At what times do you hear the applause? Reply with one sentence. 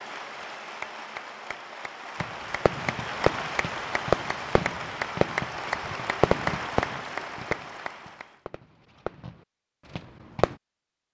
The applause can be heard from 0.0 to 8.4 s.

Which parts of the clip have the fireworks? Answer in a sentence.
You can hear the fireworks from 2.2 to 10.6 s.